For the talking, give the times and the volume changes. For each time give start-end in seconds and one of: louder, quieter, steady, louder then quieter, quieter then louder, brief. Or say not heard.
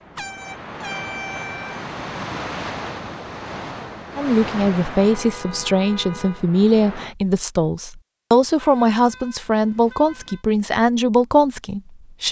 4.2-12.2 steady.